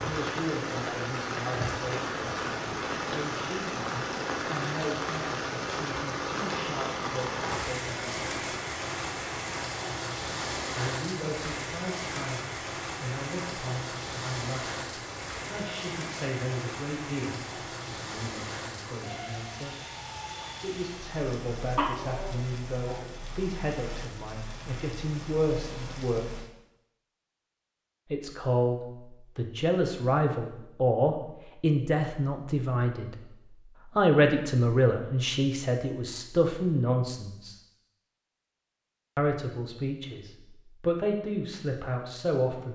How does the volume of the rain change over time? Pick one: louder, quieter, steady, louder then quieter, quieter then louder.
quieter.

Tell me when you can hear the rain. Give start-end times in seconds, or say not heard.
0.0-26.5.